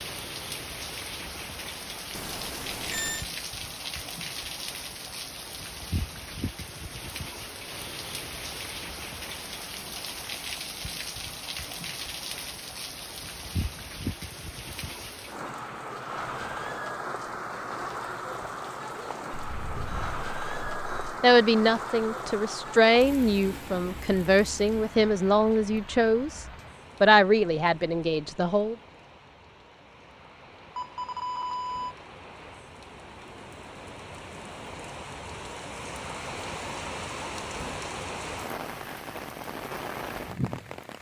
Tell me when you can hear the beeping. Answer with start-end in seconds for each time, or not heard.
2.1-3.2, 19.3-21.1, 30.8-31.9.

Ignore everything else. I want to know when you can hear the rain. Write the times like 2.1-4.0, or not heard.
0.0-40.9.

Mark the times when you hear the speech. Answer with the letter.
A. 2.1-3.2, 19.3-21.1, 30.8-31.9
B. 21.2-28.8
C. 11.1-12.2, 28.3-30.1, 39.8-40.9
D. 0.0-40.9
B.